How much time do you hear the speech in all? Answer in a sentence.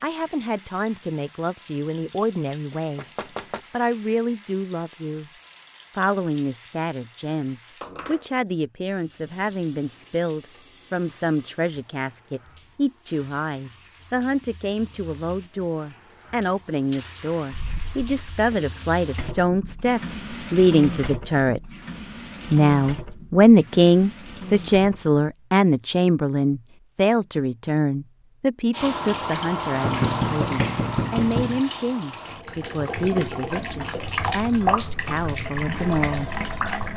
The speech can be heard for 34 seconds in total.